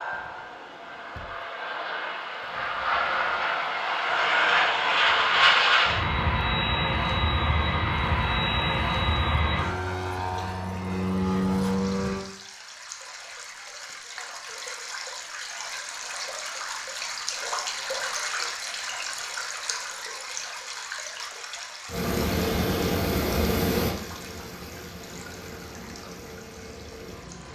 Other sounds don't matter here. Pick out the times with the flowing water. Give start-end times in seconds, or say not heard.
0.0-27.5.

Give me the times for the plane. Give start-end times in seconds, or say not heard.
0.0-12.2, 21.9-27.5.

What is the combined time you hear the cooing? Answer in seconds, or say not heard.
not heard.